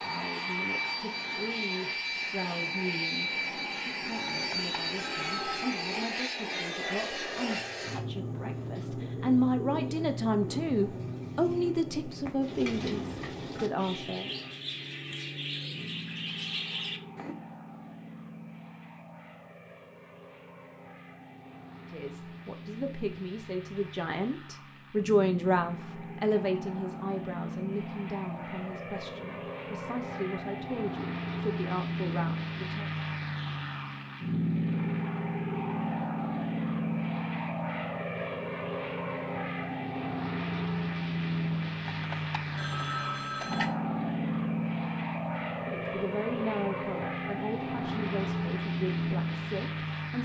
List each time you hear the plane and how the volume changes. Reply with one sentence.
You can hear the plane from 0.0 to 50.1 s, getting quieter then louder.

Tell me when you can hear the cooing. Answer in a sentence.
The cooing can be heard from 8.3 to 17.4 s.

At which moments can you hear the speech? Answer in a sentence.
You can hear the speech from 0.0 to 14.3 s, from 21.9 to 32.9 s and from 45.6 to 50.1 s.